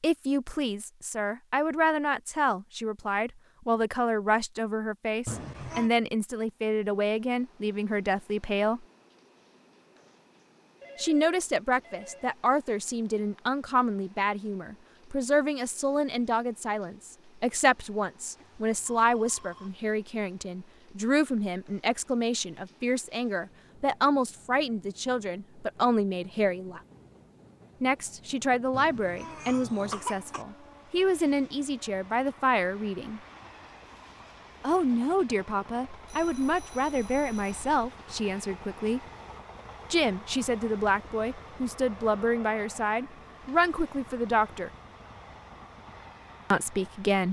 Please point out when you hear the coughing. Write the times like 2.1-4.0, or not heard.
5.2-5.9, 28.7-30.4.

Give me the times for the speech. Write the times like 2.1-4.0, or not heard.
0.0-8.8, 10.9-26.8, 27.8-33.2, 34.6-39.0, 39.9-44.7, 46.5-47.2.